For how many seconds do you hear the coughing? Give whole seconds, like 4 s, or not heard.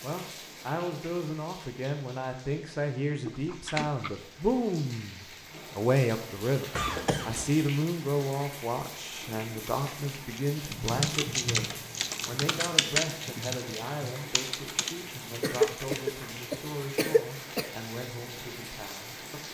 4 s.